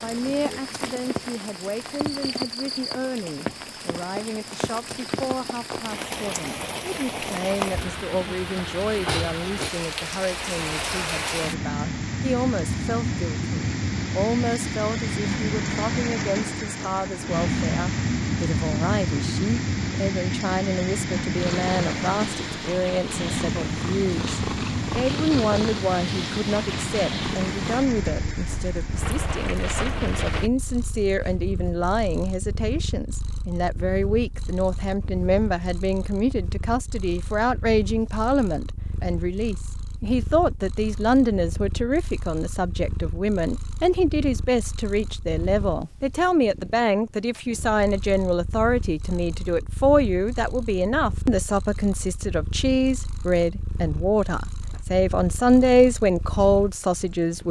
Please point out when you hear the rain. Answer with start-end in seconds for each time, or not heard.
0.0-30.5.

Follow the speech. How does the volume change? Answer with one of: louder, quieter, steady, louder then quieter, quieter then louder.
louder.